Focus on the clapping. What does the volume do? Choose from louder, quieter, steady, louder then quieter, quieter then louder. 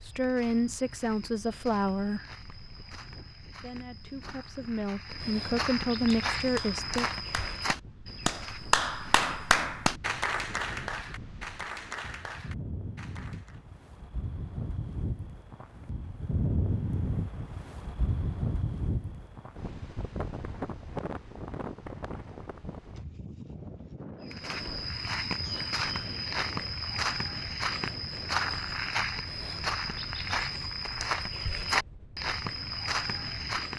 louder then quieter.